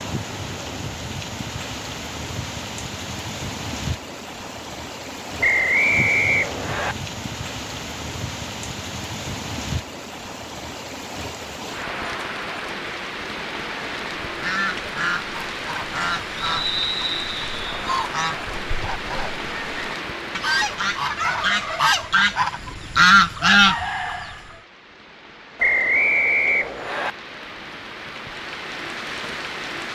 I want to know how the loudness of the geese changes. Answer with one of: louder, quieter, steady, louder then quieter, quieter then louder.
quieter then louder.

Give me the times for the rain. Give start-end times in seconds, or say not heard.
0.0-29.9.